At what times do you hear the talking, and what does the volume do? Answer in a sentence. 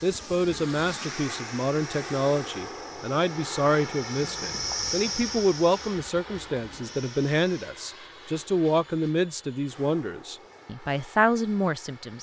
You can hear the talking from 0.0 to 12.1 s, at a steady volume.